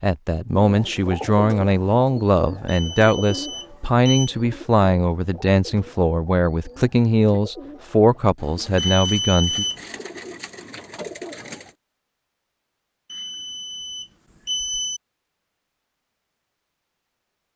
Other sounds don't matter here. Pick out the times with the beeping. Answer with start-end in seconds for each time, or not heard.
2.6-4.3, 8.8-9.8, 13.1-15.0.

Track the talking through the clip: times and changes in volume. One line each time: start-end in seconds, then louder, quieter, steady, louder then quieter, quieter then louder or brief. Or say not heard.
0.0-9.7 steady.